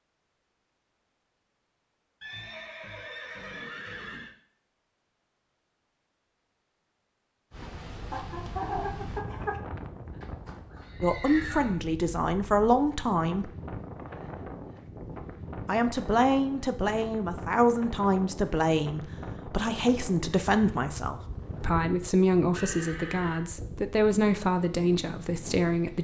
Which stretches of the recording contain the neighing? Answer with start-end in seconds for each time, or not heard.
2.2-4.3, 10.2-11.8, 22.6-23.4.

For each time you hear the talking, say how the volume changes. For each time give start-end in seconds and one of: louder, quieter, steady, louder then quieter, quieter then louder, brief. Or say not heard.
11.0-13.5 brief
15.7-26.0 steady.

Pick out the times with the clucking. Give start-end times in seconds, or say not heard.
8.1-9.6.